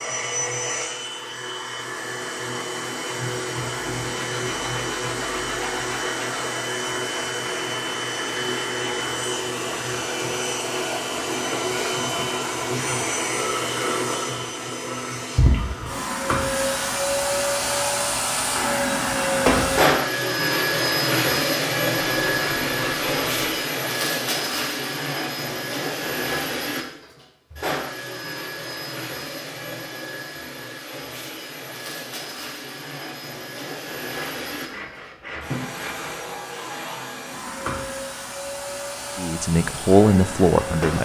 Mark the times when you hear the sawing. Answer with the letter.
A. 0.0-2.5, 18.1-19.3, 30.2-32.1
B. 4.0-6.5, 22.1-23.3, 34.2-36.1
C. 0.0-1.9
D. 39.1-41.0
B.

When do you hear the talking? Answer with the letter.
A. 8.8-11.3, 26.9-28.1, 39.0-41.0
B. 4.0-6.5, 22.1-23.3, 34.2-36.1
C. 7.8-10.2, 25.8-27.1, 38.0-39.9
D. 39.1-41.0
D.